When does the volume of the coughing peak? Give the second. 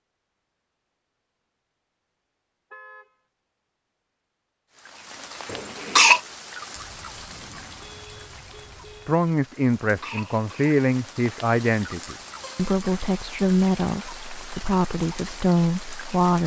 6 s.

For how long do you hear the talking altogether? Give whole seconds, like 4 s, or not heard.
7 s.